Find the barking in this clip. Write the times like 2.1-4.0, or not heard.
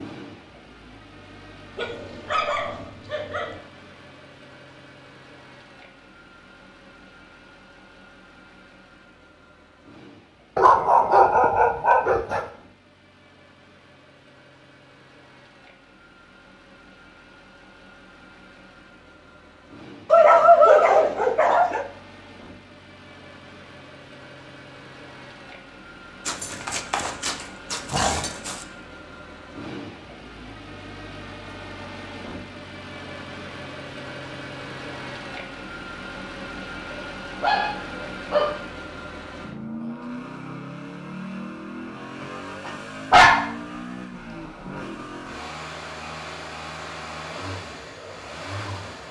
1.8-3.6, 10.6-12.4, 20.1-21.9, 26.2-28.6, 36.9-38.6, 42.2-43.5.